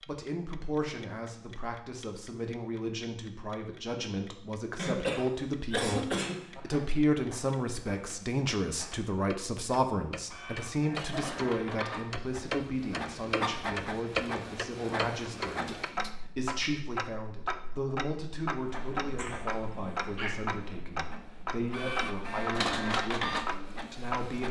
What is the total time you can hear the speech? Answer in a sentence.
You can hear the speech for 24 seconds altogether.